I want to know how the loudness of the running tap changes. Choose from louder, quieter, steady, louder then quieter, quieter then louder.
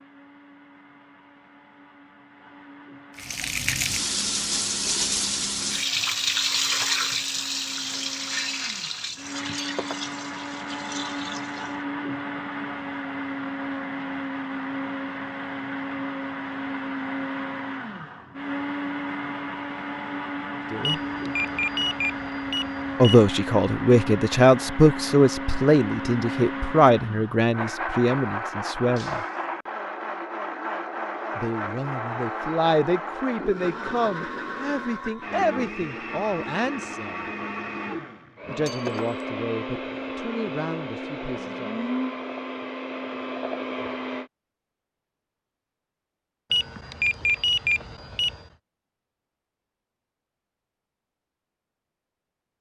quieter.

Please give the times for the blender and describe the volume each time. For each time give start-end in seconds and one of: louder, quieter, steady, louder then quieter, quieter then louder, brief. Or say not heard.
0.0-44.3 louder.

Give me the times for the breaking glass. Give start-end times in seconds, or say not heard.
9.6-10.1, 28.9-29.4, 38.6-39.2.